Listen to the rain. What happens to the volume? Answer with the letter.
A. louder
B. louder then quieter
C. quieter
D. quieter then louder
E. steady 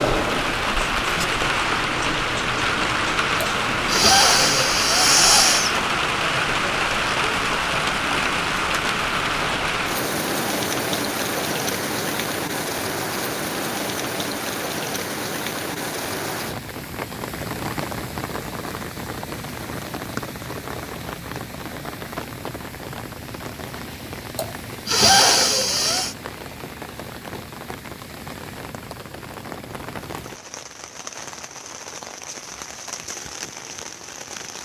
C.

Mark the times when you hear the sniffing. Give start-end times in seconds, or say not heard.
3.4-5.8, 24.4-26.1.